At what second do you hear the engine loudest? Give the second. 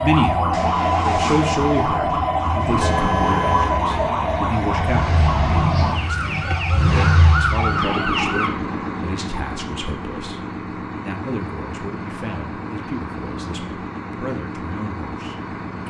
7 s.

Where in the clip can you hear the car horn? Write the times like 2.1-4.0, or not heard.
2.8-4.0.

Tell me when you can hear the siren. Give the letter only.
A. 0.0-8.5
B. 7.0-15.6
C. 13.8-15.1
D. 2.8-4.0
A.